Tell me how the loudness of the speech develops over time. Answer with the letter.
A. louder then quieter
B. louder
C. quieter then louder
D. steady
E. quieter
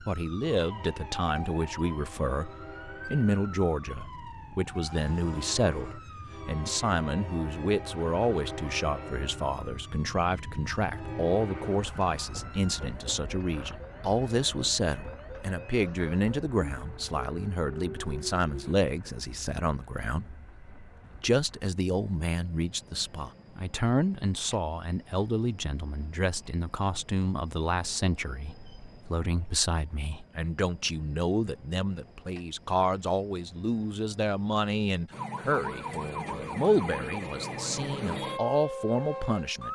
D.